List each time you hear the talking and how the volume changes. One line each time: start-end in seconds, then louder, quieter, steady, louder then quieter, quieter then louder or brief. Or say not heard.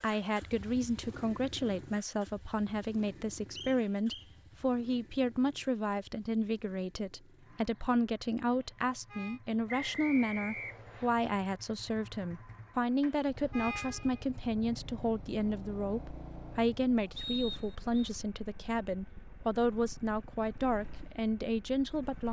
0.0-22.2 steady.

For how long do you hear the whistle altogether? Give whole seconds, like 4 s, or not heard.
3 s.